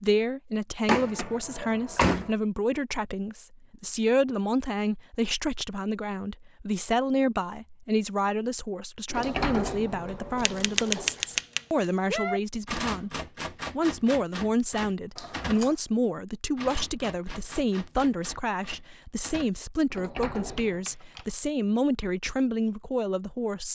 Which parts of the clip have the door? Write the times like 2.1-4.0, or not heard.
0.8-2.3, 9.1-11.2, 19.9-20.9.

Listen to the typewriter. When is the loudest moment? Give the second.
11 s.